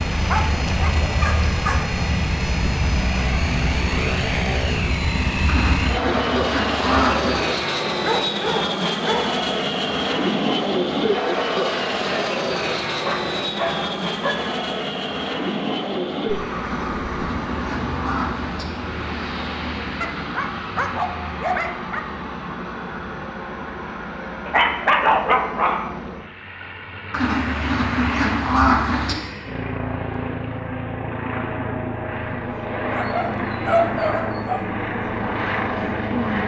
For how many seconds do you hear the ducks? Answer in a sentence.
The ducks can be heard for 6 seconds in total.